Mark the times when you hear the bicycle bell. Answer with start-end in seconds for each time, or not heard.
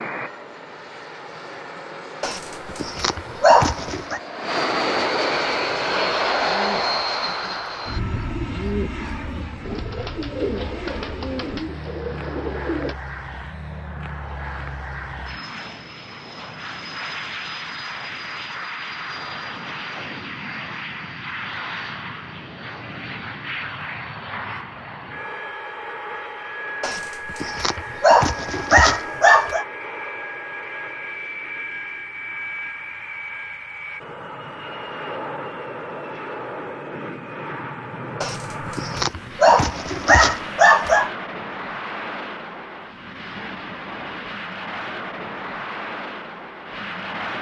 not heard.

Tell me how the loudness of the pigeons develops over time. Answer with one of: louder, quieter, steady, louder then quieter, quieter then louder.
louder.